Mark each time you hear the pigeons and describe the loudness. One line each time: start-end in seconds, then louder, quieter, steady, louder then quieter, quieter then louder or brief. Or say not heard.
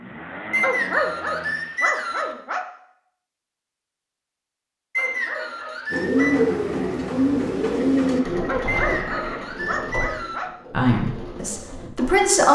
5.9-12.3 quieter.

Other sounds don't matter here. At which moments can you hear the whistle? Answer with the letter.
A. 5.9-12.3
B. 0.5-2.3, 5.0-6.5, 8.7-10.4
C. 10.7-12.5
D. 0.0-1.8
B.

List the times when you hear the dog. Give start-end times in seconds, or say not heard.
0.6-2.6, 5.0-6.5, 8.4-10.5.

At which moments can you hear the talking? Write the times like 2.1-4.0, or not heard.
10.7-12.5.